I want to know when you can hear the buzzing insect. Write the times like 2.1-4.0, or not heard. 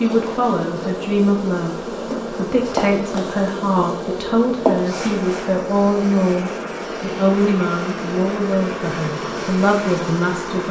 0.0-10.6.